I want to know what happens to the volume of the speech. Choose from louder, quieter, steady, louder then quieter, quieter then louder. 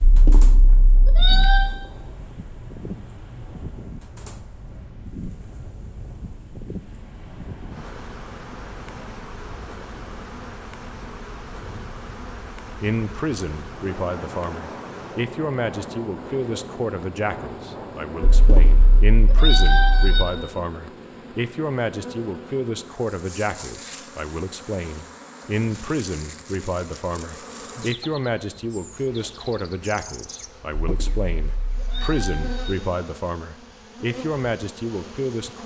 steady.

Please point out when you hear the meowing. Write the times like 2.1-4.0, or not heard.
0.0-1.7, 18.2-20.2, 30.9-32.8.